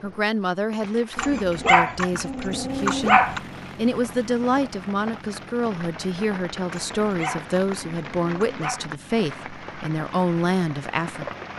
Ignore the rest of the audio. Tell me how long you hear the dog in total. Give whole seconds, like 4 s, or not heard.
4 s.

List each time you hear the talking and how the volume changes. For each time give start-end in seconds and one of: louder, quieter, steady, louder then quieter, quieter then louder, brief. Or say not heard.
0.0-11.3 steady.